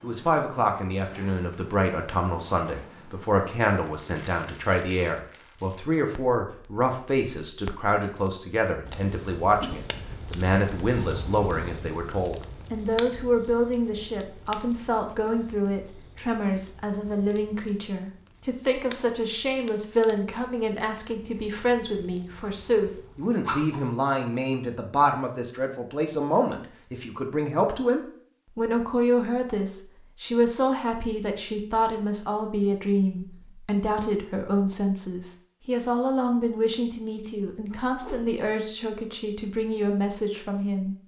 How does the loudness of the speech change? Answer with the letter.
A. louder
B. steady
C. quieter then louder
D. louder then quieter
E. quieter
B.